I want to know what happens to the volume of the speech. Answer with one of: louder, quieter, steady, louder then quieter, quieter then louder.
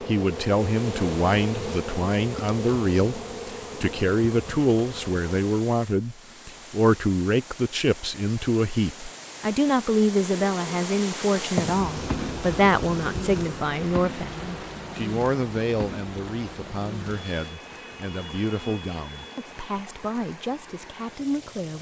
quieter.